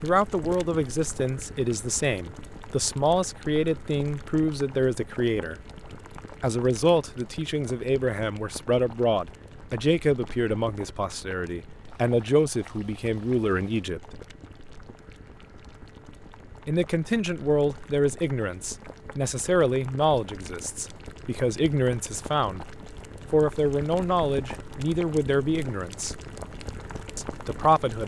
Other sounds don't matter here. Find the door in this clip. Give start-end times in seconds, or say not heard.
not heard.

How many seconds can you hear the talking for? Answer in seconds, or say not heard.
24 s.